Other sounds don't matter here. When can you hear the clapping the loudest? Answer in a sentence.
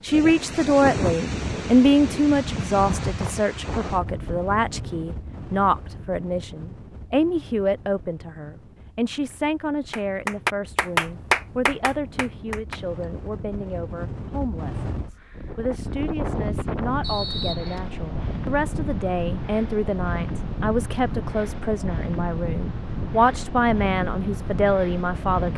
The volume of the clapping peaks at 11 seconds.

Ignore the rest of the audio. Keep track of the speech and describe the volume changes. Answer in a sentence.
The volume of the speech goes down, then up.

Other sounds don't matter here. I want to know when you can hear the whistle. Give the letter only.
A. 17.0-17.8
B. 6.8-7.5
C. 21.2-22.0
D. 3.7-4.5
A.